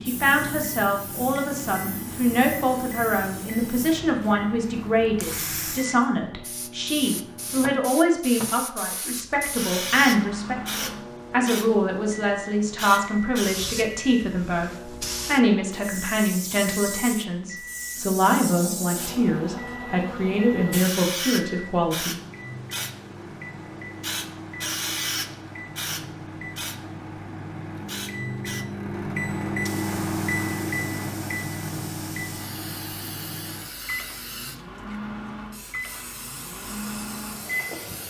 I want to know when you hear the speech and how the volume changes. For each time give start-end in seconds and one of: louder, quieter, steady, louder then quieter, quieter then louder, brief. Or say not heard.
0.0-22.1 steady.